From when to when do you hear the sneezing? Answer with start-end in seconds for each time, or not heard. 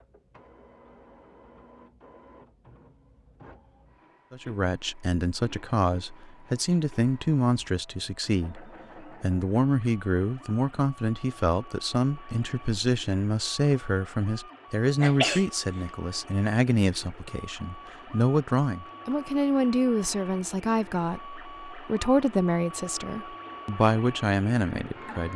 15.0-15.4.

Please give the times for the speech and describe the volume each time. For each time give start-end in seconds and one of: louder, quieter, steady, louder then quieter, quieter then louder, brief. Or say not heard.
4.3-25.3 steady.